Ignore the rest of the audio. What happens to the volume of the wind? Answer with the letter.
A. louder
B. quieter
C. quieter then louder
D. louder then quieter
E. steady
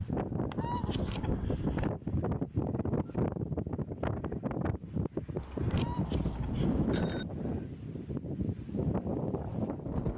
E.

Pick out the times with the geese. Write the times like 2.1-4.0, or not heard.
0.5-1.9, 5.7-7.1.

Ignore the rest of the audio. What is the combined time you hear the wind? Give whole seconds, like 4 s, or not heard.
10 s.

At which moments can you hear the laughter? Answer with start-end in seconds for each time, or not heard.
not heard.